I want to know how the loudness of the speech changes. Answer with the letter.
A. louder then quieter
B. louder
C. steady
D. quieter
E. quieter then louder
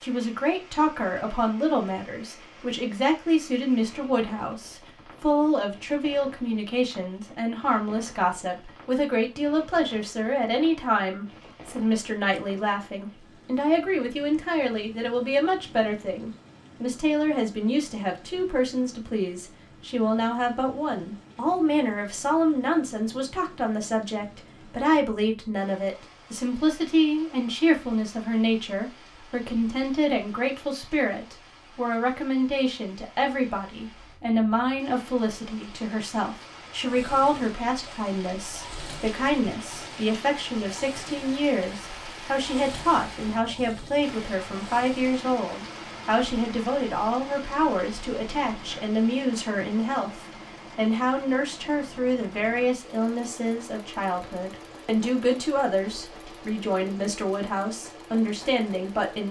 C.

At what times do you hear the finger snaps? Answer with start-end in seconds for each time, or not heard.
not heard.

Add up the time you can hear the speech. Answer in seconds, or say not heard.
59 s.